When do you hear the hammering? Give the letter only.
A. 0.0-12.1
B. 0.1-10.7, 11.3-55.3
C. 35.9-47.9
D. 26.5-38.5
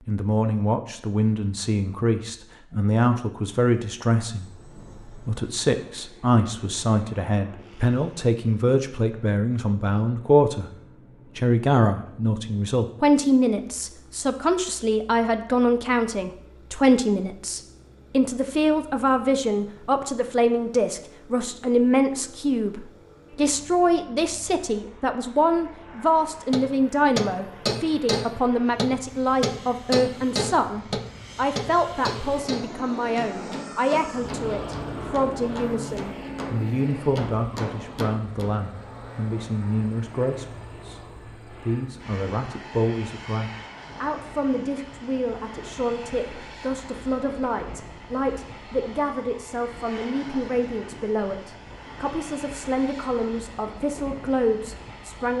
D.